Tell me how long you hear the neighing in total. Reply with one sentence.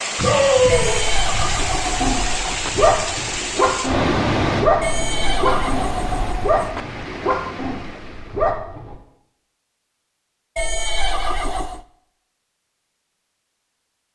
The neighing can be heard for 5 seconds in total.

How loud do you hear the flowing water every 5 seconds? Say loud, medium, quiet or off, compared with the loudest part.
loud, medium, off.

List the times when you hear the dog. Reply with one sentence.
You can hear the dog from 0.1 to 8.9 s.